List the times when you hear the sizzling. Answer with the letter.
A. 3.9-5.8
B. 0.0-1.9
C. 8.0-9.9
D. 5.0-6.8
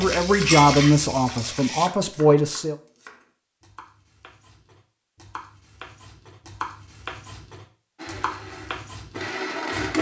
B.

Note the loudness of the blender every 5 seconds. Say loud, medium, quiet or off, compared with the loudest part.
off, loud.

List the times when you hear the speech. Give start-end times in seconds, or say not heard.
0.0-2.8.